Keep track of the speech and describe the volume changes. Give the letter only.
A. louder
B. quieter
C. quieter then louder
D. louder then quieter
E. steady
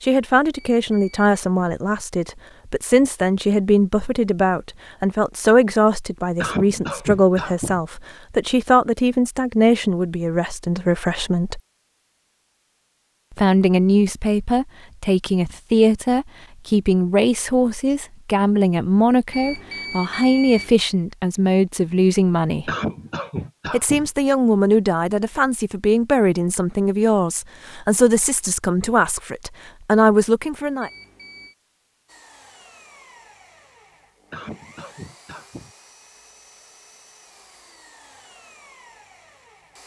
E.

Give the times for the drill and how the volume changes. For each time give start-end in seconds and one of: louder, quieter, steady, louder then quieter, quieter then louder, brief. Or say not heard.
32.0-39.8 steady.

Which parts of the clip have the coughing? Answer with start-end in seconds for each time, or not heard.
6.4-7.8, 22.6-24.1, 34.3-35.8.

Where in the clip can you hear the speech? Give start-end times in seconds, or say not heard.
0.0-11.6, 13.3-22.7, 23.7-30.9.